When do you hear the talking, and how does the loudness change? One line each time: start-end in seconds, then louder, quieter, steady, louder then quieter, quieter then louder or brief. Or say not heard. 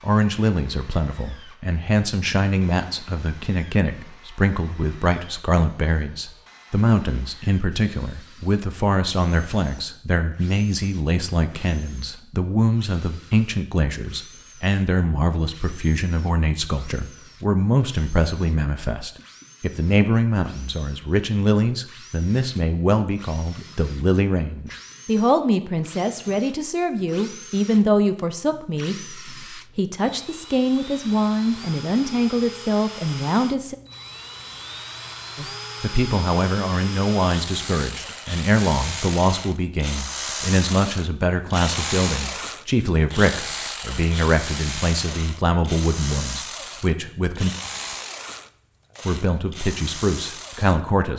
0.0-33.8 steady
35.4-47.5 steady
49.0-51.1 brief.